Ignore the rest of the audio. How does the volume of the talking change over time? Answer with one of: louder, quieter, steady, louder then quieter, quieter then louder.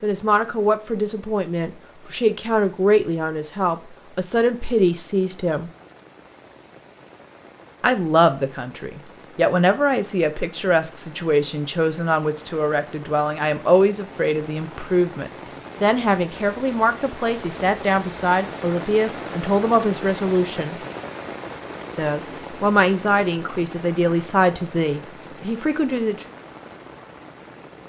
steady.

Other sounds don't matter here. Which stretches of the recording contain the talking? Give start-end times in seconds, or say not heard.
0.0-5.7, 7.8-20.8, 21.9-26.2.